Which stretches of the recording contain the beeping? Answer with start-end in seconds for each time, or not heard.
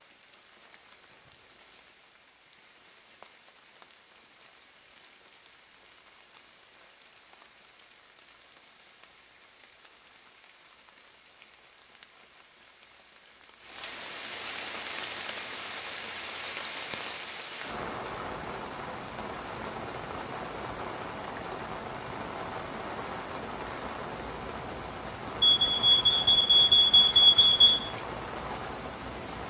25.4-27.9.